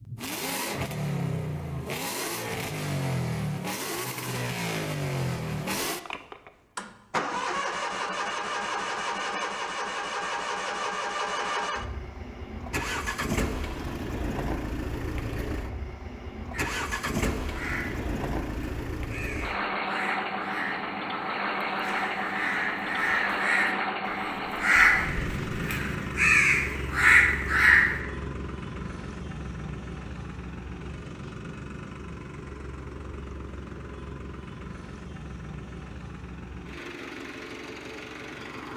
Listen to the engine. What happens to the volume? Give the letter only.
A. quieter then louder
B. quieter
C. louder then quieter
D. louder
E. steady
B.